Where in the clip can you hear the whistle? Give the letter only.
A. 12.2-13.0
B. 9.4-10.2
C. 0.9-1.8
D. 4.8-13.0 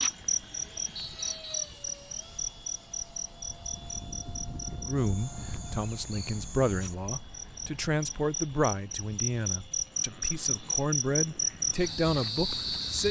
C.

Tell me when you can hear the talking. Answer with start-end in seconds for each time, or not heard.
4.8-13.0.